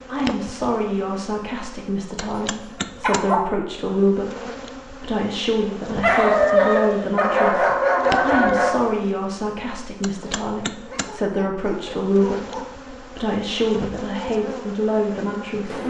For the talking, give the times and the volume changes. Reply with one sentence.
You can hear the talking from 0.1 to 15.8 s, at a steady volume.